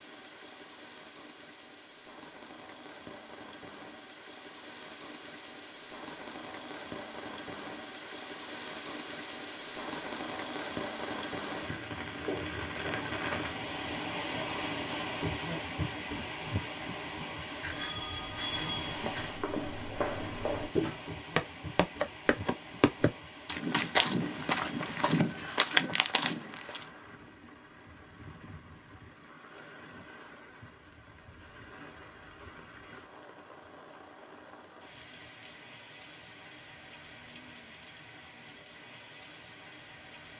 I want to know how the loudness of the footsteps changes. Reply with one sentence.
The loudness of the footsteps goes up.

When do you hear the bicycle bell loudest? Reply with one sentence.
The volume of the bicycle bell peaks at 18 seconds.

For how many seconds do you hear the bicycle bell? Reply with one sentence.
You can hear the bicycle bell for 2 seconds altogether.